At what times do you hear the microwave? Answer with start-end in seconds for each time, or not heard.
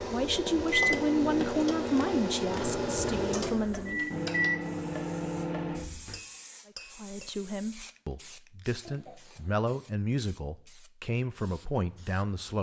0.0-6.2.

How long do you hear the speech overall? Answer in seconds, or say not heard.
10 s.